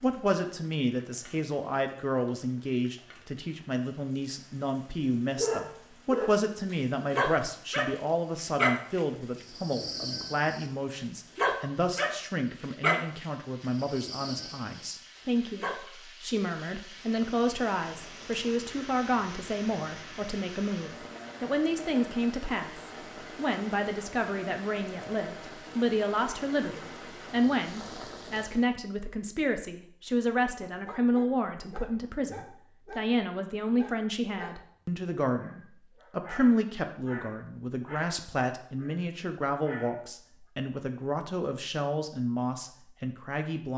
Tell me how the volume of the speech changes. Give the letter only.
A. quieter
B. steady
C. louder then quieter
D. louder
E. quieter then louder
B.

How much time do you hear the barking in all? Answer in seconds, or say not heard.
19 s.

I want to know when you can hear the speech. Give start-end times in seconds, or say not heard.
0.0-43.7.